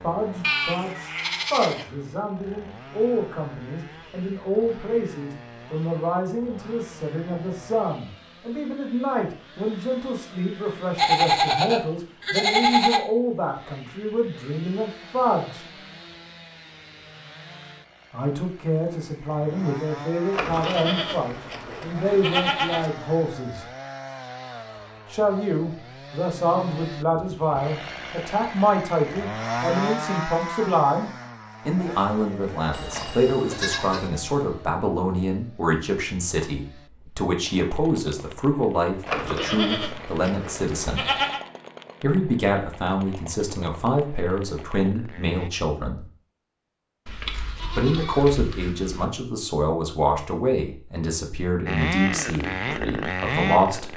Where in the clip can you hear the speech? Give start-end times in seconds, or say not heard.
0.0-15.7, 18.1-23.6, 25.1-41.0, 42.0-46.0, 47.8-53.9.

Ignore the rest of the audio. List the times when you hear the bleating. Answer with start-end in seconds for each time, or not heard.
0.4-1.9, 10.9-13.0, 20.3-22.9, 32.7-34.1, 39.0-41.4, 47.0-49.0.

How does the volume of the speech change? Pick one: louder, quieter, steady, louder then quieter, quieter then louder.
steady.